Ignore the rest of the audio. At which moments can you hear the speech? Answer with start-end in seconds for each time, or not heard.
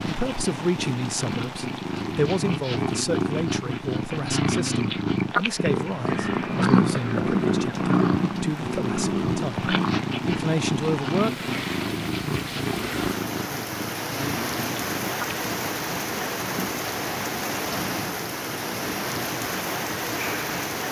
0.0-11.5.